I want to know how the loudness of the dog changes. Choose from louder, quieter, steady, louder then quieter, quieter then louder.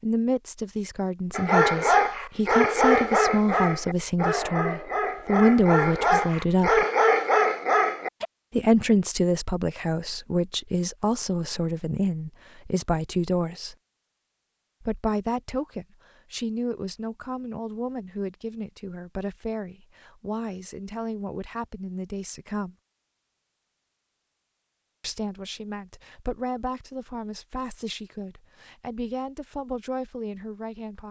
quieter then louder.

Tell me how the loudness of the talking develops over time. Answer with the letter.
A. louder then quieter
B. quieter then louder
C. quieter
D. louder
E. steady
C.